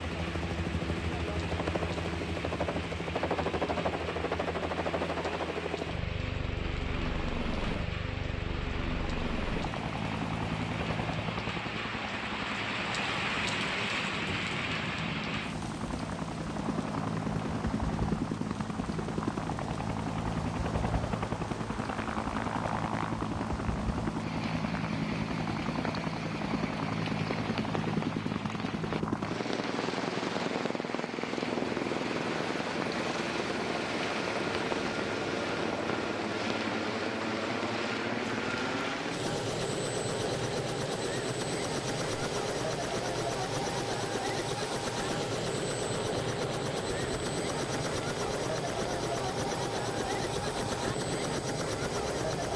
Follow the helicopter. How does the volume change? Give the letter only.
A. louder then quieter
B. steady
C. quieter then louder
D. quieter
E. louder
B.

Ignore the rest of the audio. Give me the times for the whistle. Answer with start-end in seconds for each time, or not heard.
not heard.